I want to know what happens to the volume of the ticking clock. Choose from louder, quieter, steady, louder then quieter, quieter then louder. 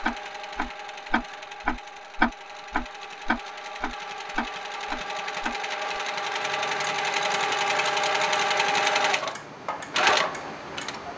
quieter.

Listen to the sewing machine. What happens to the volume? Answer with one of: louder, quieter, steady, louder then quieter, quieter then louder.
louder.